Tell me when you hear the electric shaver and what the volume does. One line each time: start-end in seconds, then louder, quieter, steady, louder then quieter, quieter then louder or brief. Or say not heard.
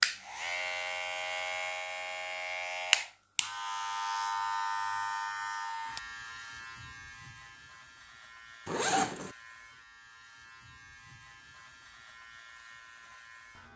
0.0-13.7 quieter.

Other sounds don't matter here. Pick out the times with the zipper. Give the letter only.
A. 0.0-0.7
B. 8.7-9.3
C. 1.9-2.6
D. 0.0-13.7
B.